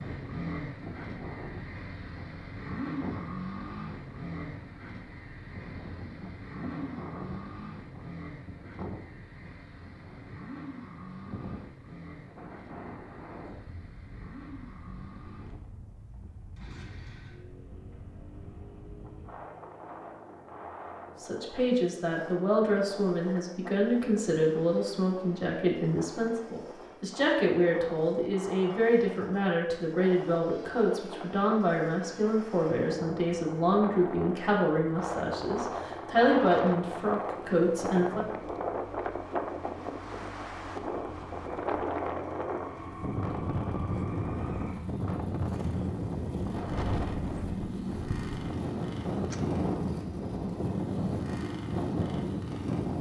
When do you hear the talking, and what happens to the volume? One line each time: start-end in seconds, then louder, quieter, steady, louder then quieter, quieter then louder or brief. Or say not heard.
21.2-38.2 steady.